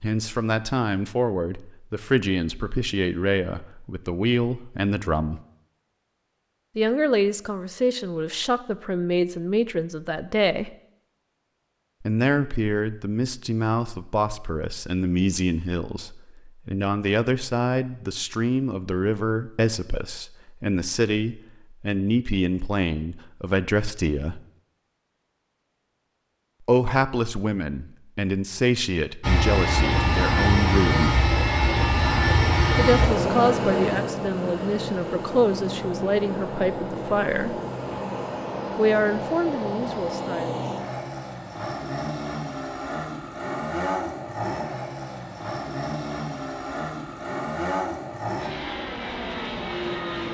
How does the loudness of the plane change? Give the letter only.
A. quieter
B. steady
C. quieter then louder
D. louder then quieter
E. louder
A.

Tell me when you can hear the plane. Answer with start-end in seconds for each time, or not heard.
29.2-50.3.